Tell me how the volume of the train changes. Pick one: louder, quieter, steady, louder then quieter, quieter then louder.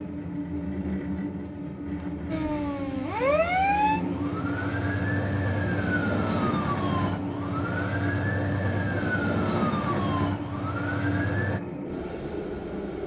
steady.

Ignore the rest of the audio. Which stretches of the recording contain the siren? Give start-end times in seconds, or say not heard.
2.3-11.6.